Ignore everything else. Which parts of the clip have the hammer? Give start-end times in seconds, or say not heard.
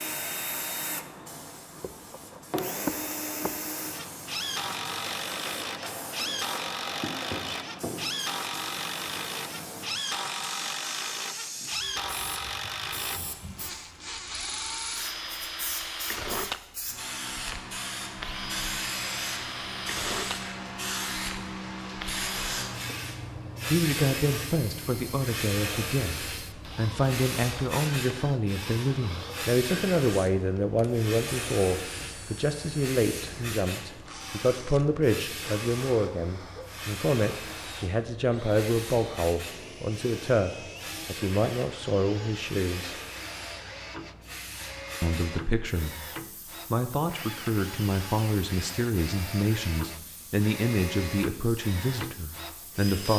4.9-7.7.